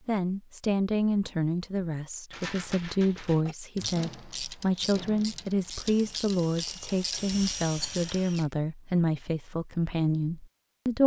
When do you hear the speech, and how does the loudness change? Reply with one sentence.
The speech can be heard from 0.1 to 11.0 s, at a steady volume.